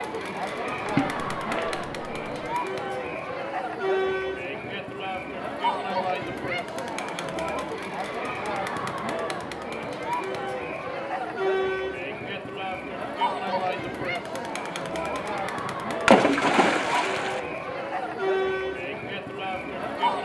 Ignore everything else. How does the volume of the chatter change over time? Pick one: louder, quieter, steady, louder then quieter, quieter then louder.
steady.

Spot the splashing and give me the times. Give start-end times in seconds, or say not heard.
0.8-2.5, 16.1-17.4.